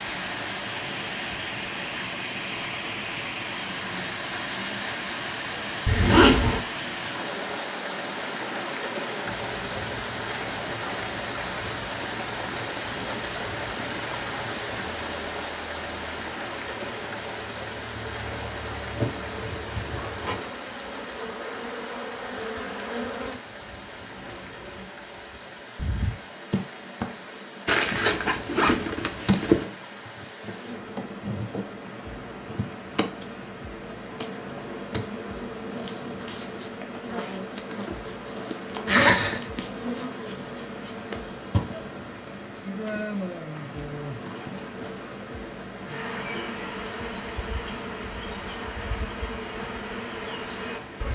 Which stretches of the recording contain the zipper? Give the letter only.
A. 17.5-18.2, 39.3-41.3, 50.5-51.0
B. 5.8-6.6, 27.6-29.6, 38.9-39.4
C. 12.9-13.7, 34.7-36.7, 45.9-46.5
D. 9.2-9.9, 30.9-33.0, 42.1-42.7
B.